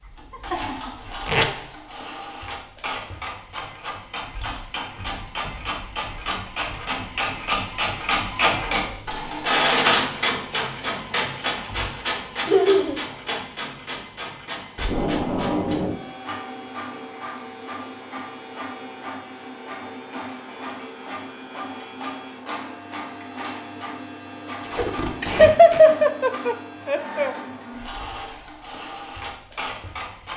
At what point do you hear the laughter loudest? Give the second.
26 s.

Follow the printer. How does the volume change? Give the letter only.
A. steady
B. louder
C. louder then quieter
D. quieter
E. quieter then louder
C.